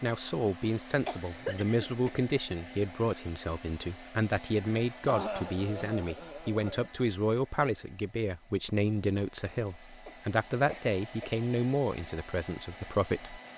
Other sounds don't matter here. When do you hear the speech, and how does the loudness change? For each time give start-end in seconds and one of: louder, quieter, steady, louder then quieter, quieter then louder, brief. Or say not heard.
0.0-13.4 steady.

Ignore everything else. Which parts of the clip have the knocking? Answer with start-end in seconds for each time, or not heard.
not heard.